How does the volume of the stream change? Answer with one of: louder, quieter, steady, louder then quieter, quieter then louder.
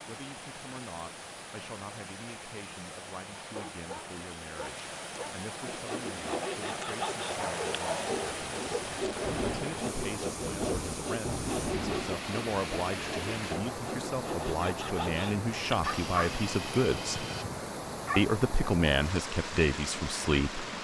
louder.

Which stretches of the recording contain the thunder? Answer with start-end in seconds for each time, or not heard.
8.7-12.2.